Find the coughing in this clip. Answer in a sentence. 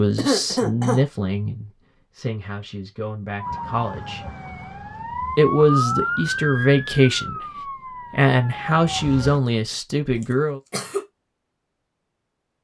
You can hear the coughing from 0.1 to 1.1 s and from 10.2 to 11.1 s.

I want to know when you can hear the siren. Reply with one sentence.
The siren can be heard from 3.4 to 9.4 s.